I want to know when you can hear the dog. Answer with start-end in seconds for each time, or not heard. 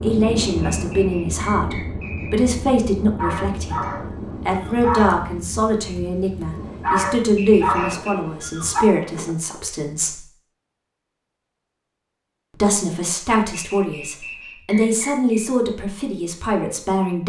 3.1-8.8.